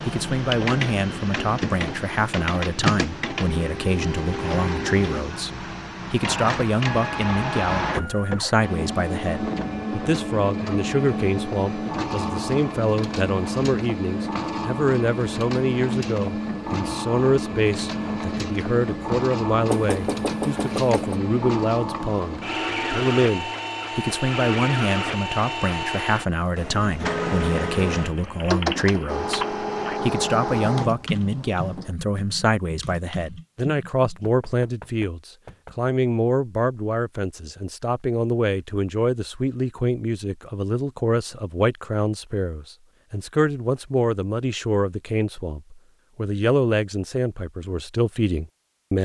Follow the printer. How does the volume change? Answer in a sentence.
The loudness of the printer stays about the same.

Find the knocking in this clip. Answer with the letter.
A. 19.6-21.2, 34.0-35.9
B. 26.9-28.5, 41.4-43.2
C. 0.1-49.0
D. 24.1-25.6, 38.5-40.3
A.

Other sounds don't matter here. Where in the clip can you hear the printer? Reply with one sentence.
The printer can be heard from 0.0 to 31.9 s.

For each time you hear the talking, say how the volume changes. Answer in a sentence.
The talking can be heard from 0.1 to 49.0 s, at a steady volume.